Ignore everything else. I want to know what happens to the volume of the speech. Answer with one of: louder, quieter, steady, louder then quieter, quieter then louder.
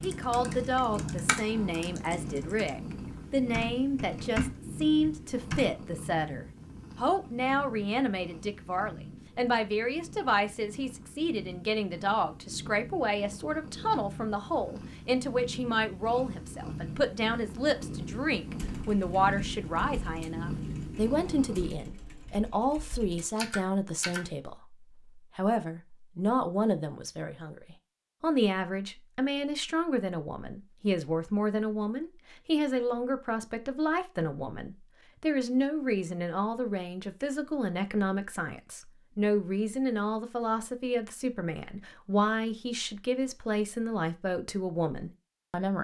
steady.